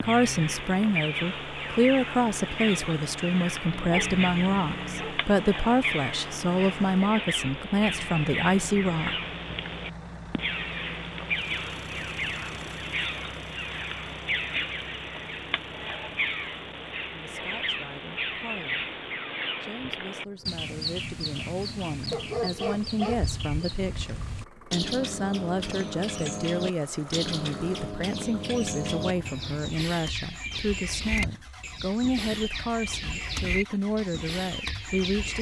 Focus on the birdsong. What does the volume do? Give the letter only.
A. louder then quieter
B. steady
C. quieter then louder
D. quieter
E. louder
B.